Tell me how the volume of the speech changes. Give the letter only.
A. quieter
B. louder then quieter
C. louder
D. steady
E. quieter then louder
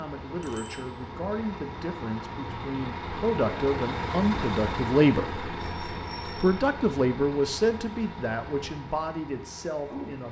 B.